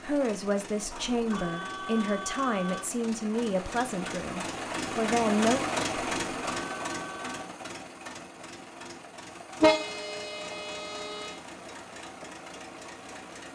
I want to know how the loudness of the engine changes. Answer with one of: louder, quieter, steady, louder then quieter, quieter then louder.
louder then quieter.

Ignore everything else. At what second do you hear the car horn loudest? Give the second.
10 s.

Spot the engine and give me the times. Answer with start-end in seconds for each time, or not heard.
0.0-13.5.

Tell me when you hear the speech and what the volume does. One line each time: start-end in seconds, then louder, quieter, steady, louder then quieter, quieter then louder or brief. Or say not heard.
0.0-5.7 steady.